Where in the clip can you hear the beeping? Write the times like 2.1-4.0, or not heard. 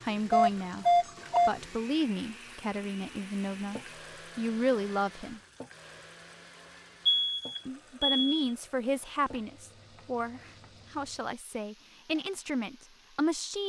0.3-1.5, 7.0-8.4.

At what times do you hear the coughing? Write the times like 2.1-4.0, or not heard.
not heard.